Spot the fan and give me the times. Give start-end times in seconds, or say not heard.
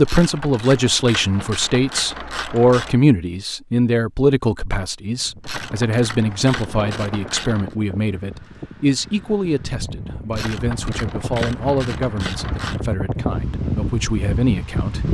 5.0-15.0.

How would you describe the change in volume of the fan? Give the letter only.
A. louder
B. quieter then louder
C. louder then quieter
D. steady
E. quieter
A.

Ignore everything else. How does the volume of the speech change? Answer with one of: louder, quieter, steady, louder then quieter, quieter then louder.
quieter.